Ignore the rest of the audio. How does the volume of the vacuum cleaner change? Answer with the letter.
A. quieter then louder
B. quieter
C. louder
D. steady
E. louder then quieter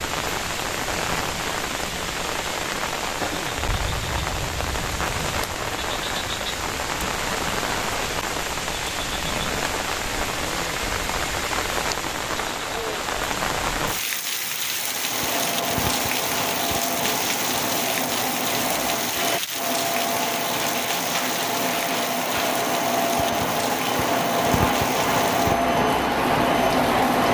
C.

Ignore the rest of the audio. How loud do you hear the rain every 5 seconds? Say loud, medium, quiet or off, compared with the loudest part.
loud, loud, loud, loud, medium, medium.